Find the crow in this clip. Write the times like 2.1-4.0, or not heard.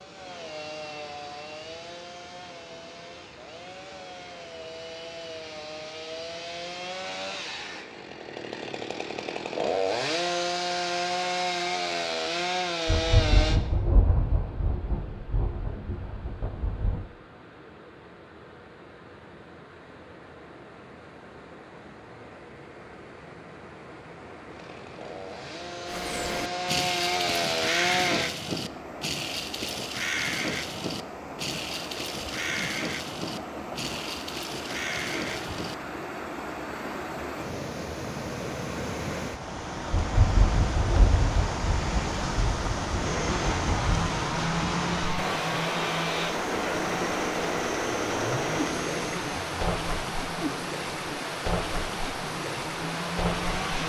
25.9-36.0.